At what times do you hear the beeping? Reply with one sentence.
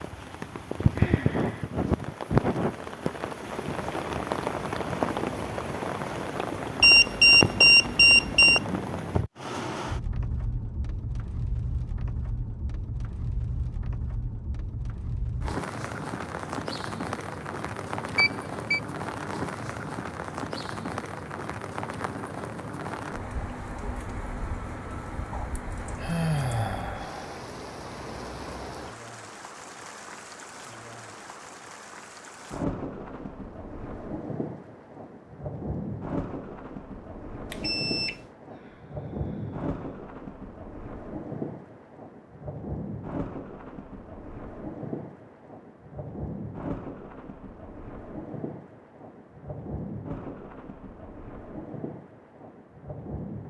You can hear the beeping from 6.8 to 8.6 s, from 18.1 to 18.8 s and from 37.5 to 38.2 s.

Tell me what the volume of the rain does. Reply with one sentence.
The volume of the rain goes down.